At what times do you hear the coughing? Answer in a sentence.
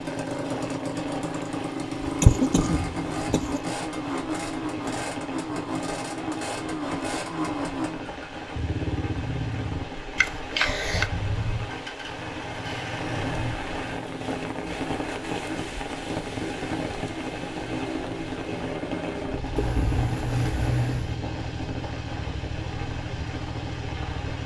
You can hear the coughing from 2.0 to 3.6 s, from 10.2 to 11.1 s and from 19.6 to 21.2 s.